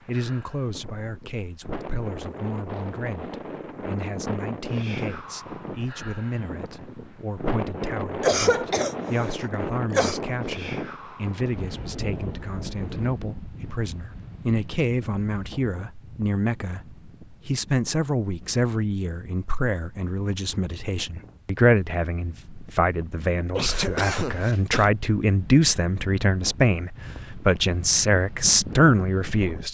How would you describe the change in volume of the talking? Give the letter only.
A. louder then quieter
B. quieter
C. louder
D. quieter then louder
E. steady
C.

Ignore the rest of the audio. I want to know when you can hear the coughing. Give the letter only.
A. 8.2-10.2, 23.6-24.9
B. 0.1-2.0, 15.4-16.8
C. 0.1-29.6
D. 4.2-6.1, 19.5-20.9
A.